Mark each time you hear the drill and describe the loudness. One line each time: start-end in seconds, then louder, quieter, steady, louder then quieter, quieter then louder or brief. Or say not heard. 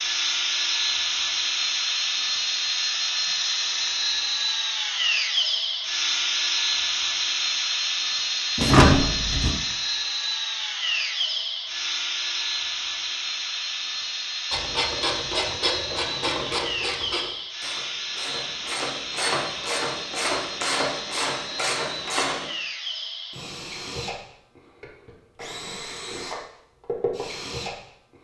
0.0-28.1 quieter.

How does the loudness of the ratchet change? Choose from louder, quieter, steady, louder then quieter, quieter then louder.
quieter then louder.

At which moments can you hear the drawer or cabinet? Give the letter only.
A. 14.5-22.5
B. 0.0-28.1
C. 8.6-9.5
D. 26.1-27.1
C.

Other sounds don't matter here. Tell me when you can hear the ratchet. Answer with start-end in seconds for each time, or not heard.
14.5-22.5.